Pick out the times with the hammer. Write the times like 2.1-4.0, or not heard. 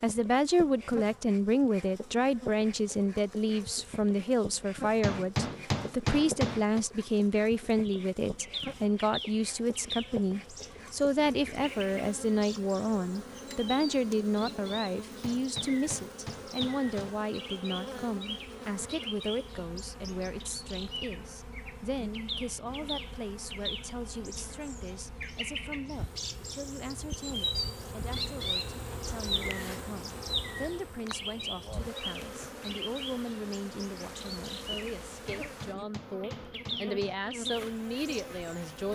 5.0-6.8, 15.2-17.1, 35.2-37.1.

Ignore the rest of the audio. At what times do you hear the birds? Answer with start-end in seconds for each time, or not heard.
7.8-38.7.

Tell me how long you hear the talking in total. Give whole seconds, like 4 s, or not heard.
39 s.